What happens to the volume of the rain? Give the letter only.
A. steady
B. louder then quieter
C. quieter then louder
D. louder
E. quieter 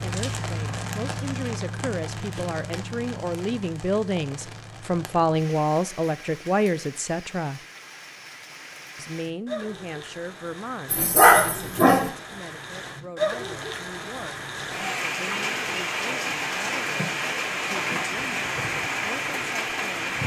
C.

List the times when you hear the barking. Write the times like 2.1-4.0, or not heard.
10.9-12.1.